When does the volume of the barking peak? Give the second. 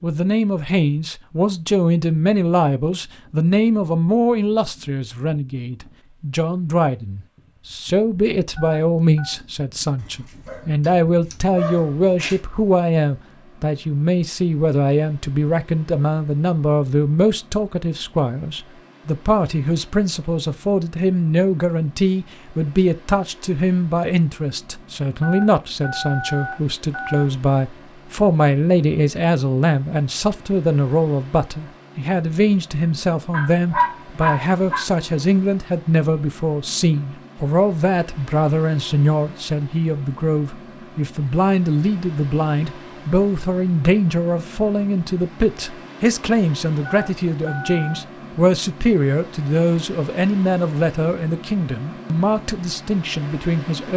34 s.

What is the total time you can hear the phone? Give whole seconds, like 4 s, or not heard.
4 s.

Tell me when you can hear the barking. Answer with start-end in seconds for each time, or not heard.
10.0-12.4, 33.3-34.9.